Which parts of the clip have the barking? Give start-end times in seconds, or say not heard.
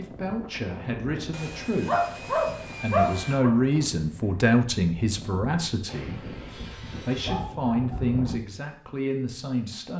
1.9-3.5, 7.2-8.2.